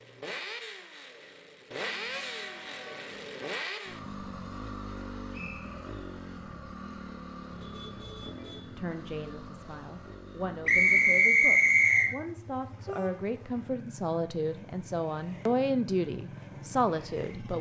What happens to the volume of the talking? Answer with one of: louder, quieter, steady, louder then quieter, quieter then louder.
louder.